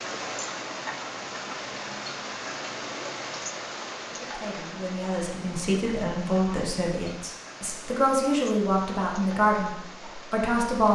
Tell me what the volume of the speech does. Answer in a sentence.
The volume of the speech goes up.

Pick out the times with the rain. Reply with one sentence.
You can hear the rain from 0.0 to 10.9 s.